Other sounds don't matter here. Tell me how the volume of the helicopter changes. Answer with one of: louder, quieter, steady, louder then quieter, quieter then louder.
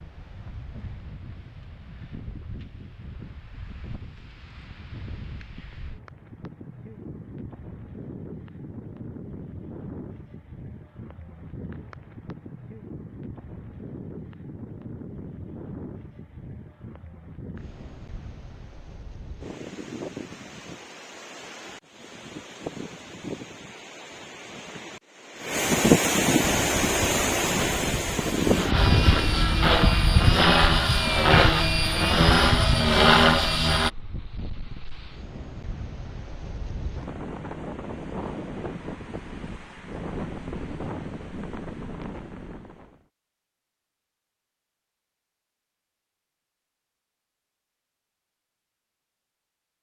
louder.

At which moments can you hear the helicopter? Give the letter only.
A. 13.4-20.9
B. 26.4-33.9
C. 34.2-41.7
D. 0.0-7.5
B.